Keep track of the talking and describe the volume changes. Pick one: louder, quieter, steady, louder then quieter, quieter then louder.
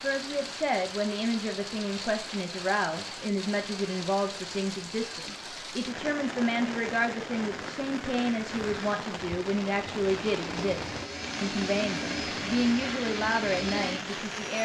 steady.